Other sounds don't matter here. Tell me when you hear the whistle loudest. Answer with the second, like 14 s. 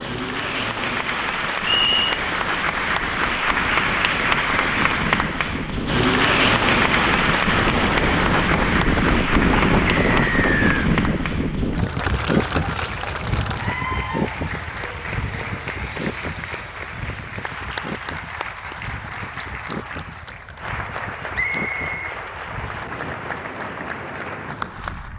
2 s.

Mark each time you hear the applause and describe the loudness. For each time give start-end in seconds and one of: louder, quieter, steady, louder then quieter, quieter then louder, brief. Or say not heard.
0.0-25.1 quieter.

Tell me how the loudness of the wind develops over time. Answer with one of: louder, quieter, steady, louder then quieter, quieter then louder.
louder then quieter.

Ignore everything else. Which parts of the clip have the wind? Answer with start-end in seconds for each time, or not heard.
0.0-25.1.